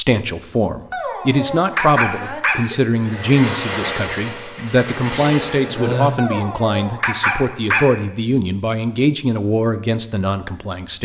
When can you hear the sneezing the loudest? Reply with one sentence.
The loudest moment of the sneezing is at 6 seconds.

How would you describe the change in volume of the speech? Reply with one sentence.
The loudness of the speech stays about the same.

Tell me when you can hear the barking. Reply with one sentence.
The barking can be heard from 0.9 to 2.5 s and from 6.2 to 7.8 s.